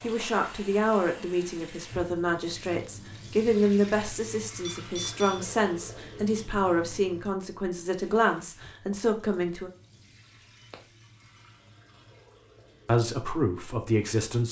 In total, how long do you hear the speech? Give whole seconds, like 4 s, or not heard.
11 s.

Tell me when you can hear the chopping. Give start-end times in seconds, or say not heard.
not heard.